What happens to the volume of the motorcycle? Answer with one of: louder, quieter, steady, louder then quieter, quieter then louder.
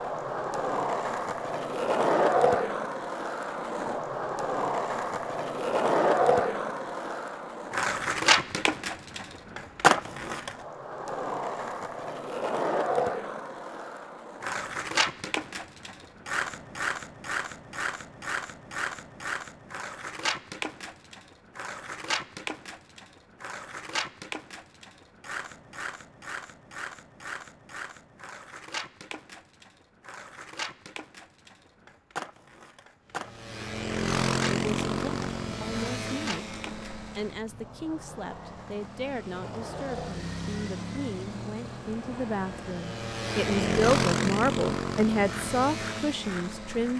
quieter then louder.